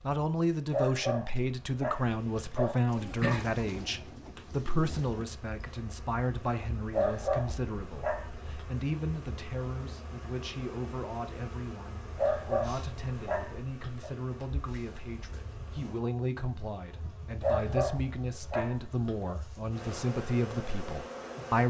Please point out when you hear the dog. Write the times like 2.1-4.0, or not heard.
0.7-3.5, 6.9-8.5, 12.2-14.1, 17.4-19.4.